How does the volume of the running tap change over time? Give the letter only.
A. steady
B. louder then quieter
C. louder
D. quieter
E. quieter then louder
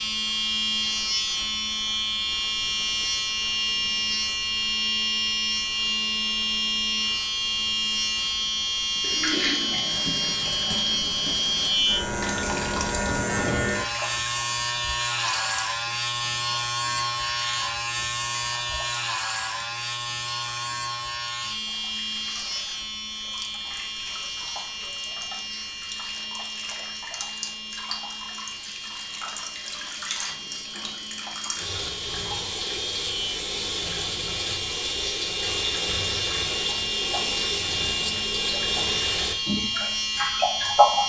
E.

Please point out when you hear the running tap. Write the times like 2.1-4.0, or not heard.
9.0-41.0.